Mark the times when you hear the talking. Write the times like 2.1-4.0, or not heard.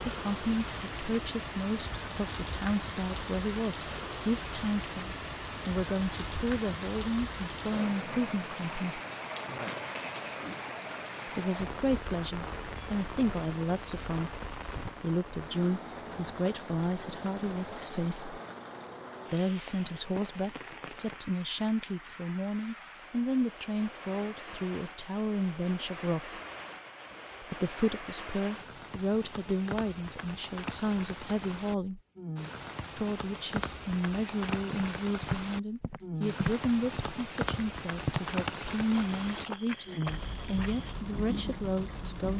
0.1-9.0, 11.2-18.4, 19.3-26.4, 27.4-32.0, 33.0-42.3.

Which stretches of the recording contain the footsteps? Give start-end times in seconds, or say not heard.
34.5-41.1.